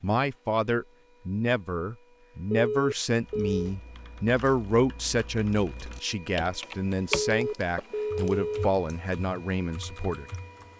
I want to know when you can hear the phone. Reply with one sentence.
The phone can be heard from 2.5 to 3.7 s and from 7.2 to 8.7 s.